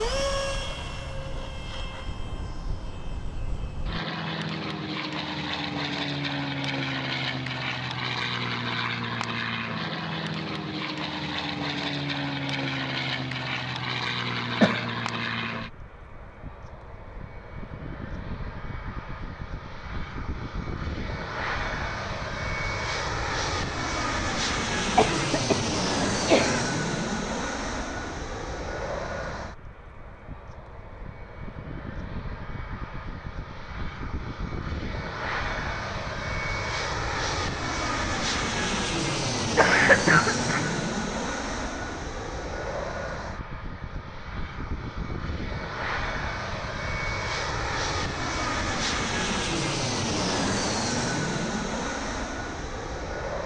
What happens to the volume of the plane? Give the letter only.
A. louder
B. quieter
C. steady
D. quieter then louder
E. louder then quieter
C.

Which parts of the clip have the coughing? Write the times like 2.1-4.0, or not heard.
14.6-15.4, 24.9-26.6, 39.5-40.7.